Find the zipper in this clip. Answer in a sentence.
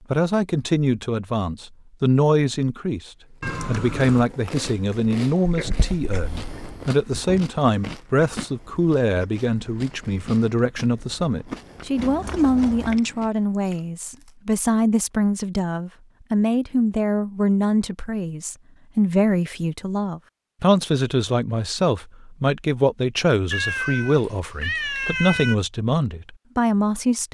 The zipper can't be heard in this clip.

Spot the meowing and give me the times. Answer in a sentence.
You can hear the meowing from 3.4 to 4.2 s, from 11.9 to 13.0 s and from 23.5 to 25.6 s.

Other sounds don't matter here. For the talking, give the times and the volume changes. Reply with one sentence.
The talking can be heard from 0.1 to 27.2 s, at a steady volume.